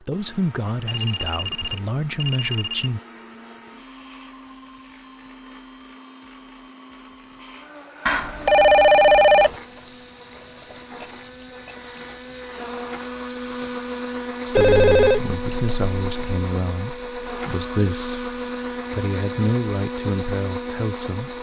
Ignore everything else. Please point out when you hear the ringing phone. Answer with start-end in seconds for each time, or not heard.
0.8-2.9, 8.1-9.6, 14.6-16.4.